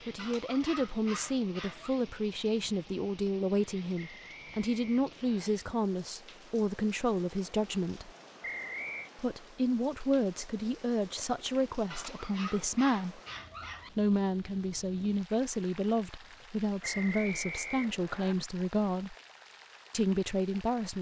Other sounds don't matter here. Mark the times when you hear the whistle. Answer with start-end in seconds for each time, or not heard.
4.0-5.5, 8.4-9.1, 16.8-18.4.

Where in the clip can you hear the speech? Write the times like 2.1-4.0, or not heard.
0.1-8.1, 9.2-13.2, 13.9-19.1, 19.9-20.9.